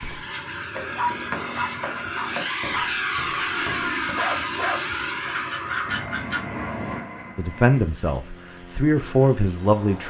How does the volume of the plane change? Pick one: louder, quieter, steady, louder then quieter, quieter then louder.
louder then quieter.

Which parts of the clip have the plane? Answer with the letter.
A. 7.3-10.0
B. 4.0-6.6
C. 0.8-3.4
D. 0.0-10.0
D.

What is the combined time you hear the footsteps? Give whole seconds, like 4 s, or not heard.
4 s.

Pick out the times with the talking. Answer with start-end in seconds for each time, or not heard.
7.3-10.0.